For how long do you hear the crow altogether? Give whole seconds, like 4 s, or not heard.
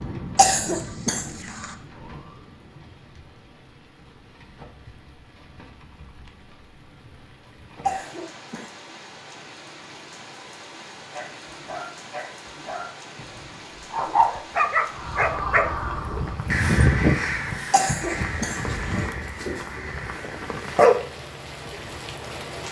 6 s.